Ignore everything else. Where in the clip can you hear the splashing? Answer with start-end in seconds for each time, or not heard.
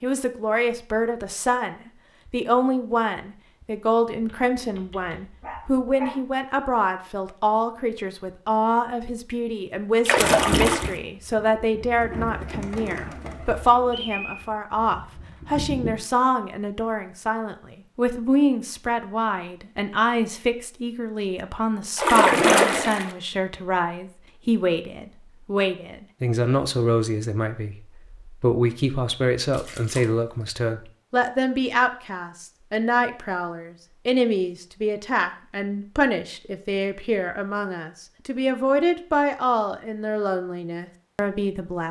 10.1-10.9, 21.9-23.1, 29.5-30.1.